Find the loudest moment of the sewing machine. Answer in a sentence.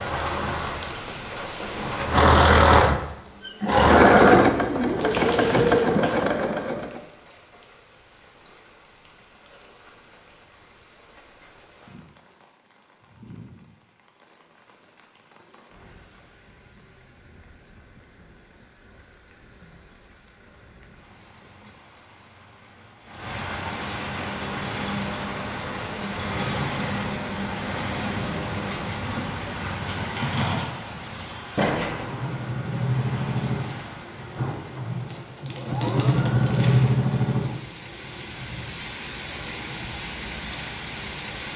The volume of the sewing machine peaks at 4 seconds.